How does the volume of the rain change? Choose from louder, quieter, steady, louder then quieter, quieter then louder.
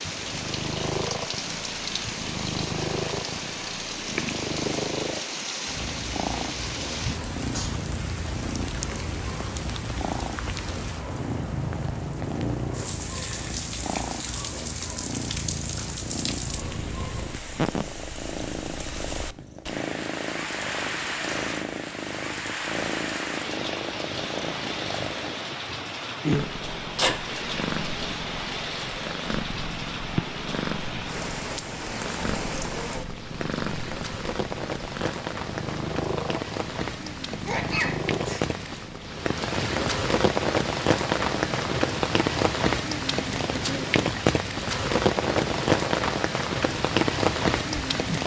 louder.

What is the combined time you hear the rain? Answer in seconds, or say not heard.
48 s.